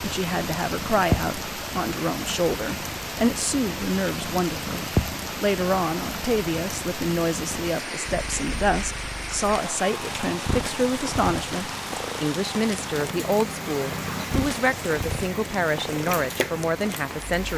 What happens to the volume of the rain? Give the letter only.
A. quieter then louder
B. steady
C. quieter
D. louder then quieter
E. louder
B.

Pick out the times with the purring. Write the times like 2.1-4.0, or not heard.
0.0-17.5.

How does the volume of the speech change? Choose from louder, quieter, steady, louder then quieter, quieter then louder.
steady.